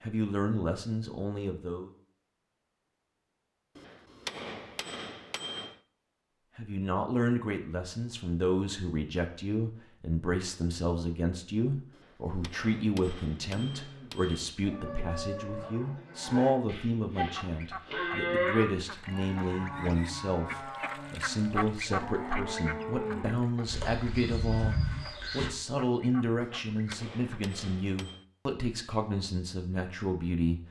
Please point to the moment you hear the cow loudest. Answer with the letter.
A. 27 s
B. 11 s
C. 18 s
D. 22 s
C.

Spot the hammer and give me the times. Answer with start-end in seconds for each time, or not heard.
3.8-5.8, 11.9-14.6, 26.4-28.2.